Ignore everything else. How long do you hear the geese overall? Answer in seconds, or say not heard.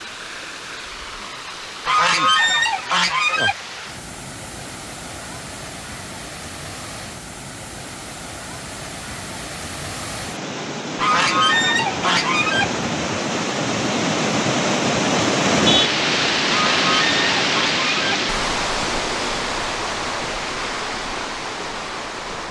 5 s.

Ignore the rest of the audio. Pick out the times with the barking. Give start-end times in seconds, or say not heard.
not heard.